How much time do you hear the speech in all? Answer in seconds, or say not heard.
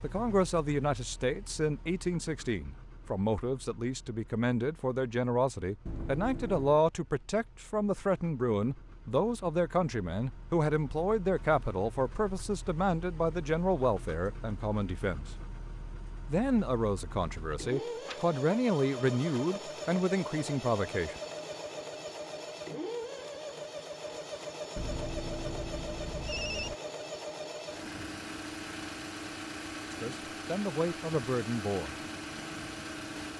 22 s.